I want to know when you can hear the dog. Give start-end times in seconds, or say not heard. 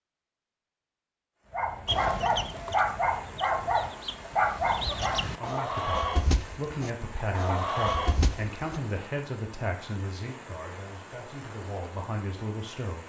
1.5-5.2.